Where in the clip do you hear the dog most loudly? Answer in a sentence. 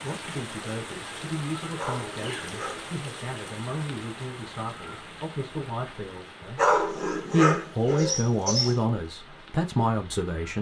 The volume of the dog peaks at 7 seconds.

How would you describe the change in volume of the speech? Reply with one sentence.
The loudness of the speech goes up.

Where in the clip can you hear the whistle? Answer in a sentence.
The whistle can't be heard in this clip.